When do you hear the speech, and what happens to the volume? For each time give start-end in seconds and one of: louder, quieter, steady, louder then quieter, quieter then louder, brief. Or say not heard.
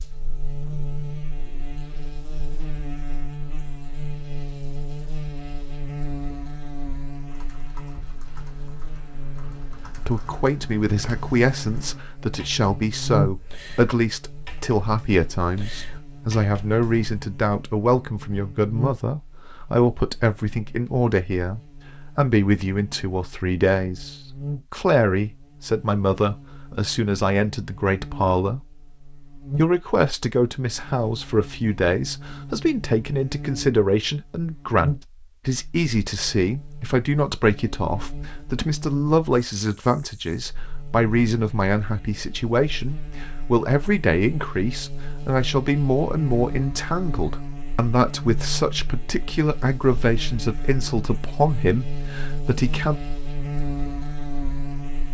10.1-53.0 steady.